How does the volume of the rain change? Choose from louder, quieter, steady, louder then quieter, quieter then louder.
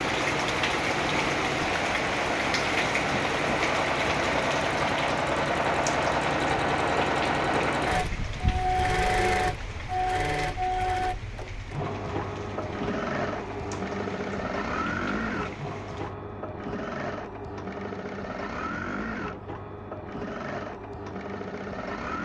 quieter.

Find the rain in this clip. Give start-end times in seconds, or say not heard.
0.0-16.1.